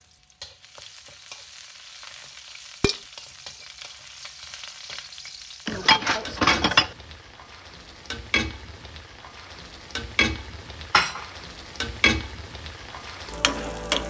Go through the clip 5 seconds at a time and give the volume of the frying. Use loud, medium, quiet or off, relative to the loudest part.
quiet, medium, loud.